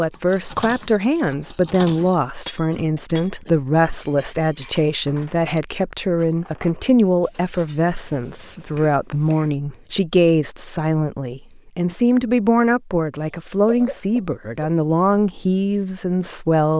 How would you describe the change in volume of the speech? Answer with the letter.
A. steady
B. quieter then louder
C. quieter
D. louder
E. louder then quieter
A.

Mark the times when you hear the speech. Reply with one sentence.
You can hear the speech from 0.0 to 16.7 s.